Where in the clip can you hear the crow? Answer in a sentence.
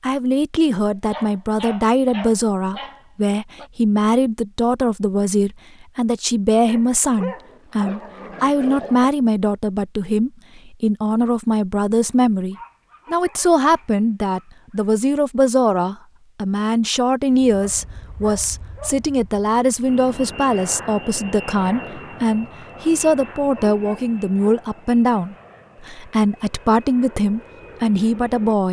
The crow can't be heard in this clip.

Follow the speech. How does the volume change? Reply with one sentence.
The volume of the speech stays about the same.